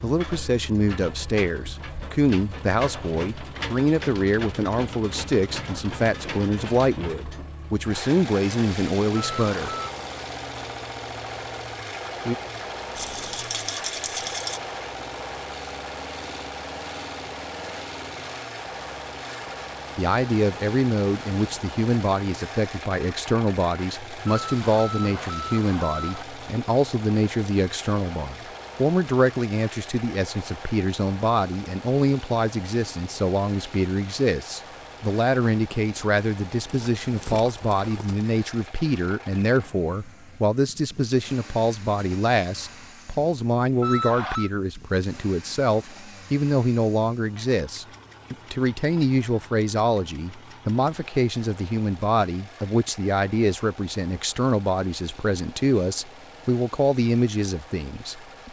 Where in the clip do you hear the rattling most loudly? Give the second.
14 s.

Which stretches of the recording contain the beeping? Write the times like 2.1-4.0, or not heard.
9.4-9.8, 24.4-26.2, 43.8-44.5.